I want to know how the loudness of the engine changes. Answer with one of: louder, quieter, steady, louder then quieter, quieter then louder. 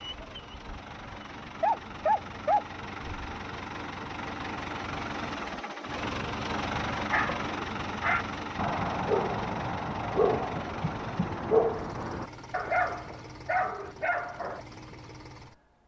louder then quieter.